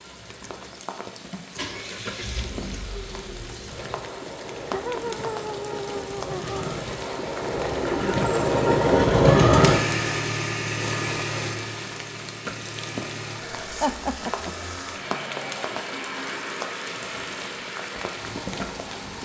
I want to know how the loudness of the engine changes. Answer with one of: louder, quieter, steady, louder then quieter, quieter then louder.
louder then quieter.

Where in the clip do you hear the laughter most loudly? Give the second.
14 s.